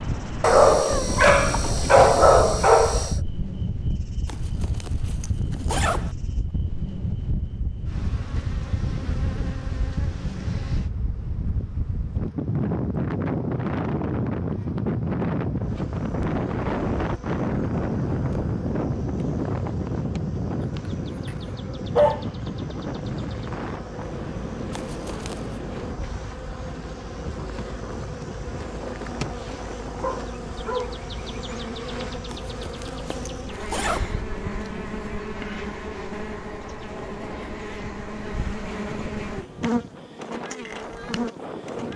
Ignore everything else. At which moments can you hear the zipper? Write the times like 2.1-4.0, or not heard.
4.2-6.2, 24.7-25.6, 32.3-34.1.